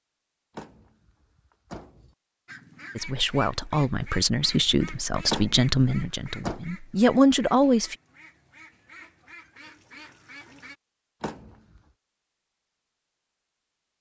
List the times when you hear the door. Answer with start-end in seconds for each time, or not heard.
0.6-2.1, 5.2-6.6, 11.2-11.8.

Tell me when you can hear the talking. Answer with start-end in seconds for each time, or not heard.
3.0-8.0.